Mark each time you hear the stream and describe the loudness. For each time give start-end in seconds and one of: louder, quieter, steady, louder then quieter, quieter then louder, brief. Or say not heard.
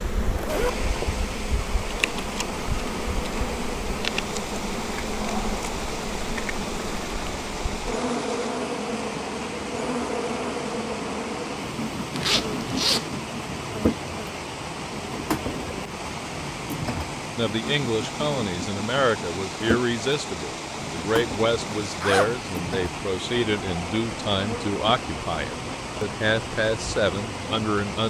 0.0-28.0 steady.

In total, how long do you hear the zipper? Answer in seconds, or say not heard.
2 s.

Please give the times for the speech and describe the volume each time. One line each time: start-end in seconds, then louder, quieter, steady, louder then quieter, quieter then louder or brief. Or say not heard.
17.4-28.0 steady.